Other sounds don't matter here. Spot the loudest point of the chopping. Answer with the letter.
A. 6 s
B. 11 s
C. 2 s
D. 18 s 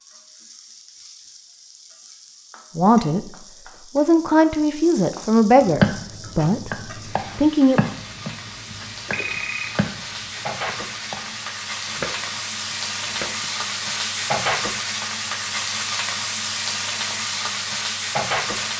A.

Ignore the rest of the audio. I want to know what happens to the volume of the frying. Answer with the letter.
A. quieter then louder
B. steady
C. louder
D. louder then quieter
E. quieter
C.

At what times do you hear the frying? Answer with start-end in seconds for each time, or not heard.
0.0-18.7.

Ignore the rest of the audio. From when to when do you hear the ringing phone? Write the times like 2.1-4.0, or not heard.
9.1-9.7.